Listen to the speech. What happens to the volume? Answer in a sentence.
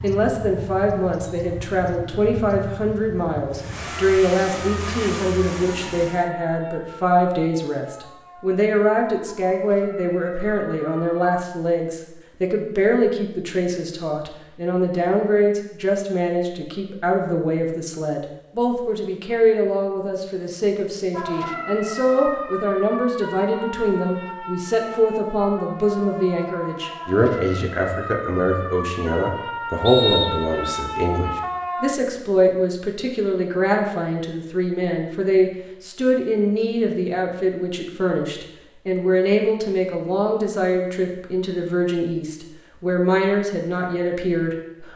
The loudness of the speech stays about the same.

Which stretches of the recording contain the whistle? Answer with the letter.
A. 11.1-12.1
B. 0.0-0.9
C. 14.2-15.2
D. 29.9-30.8
D.